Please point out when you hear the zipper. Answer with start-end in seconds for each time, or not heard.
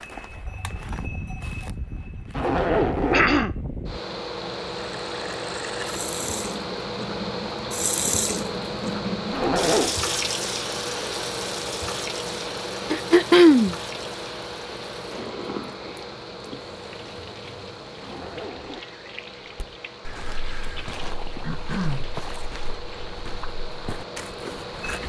2.3-3.4, 9.3-9.9, 18.0-18.9.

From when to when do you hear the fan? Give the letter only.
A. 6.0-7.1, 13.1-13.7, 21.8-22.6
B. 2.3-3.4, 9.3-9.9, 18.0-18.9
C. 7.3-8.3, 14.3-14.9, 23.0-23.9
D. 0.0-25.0
D.